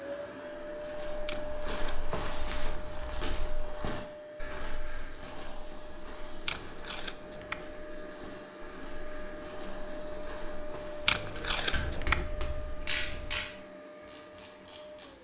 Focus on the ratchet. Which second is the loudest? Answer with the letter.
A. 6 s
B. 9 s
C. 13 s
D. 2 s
C.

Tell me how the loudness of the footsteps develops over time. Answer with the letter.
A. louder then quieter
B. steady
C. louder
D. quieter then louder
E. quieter
E.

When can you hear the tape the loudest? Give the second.
12 s.